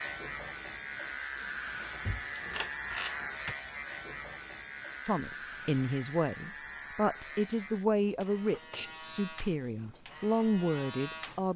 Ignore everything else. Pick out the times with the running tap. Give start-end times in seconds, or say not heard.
not heard.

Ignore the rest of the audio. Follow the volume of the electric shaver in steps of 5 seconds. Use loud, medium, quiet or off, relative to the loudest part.
loud, medium, loud.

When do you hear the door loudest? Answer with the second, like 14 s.
3 s.